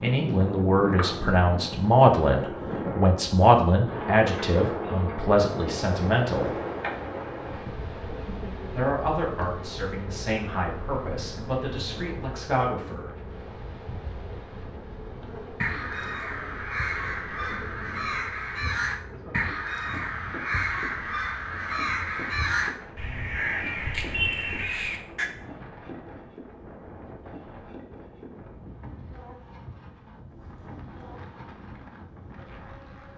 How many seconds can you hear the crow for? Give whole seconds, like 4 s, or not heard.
10 s.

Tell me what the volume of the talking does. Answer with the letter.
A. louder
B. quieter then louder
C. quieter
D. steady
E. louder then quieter
C.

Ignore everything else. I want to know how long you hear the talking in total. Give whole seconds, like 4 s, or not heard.
11 s.